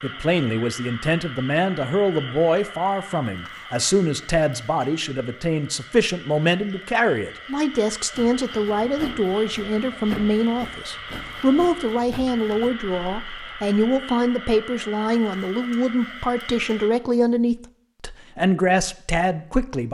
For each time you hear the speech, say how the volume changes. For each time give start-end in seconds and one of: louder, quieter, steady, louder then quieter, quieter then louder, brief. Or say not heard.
0.0-19.8 steady.